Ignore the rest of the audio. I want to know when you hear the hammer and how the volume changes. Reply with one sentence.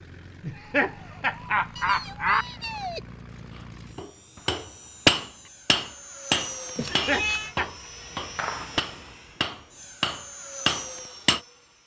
The hammer can be heard from 4.0 to 11.4 s, getting quieter then louder.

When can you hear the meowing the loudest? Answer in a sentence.
The loudest moment of the meowing is at 7 seconds.